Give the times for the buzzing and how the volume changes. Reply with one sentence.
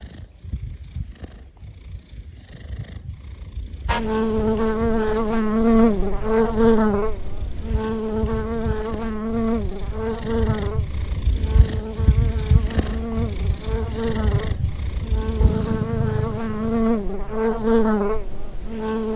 The buzzing can be heard from 3.9 to 19.1 s, getting quieter then louder.